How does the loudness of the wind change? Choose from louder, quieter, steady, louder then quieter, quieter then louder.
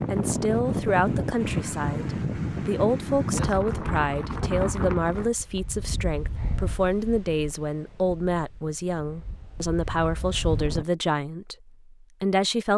quieter.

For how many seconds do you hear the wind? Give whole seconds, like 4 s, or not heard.
11 s.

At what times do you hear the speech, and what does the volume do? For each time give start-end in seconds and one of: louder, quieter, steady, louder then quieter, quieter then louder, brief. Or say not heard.
0.1-12.7 steady.